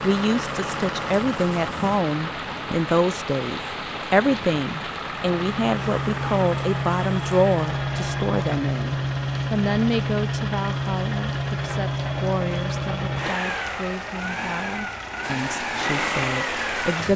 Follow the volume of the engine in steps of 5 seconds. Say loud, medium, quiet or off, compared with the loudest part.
medium, loud, loud, loud.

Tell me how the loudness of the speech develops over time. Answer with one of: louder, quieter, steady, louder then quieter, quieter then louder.
quieter.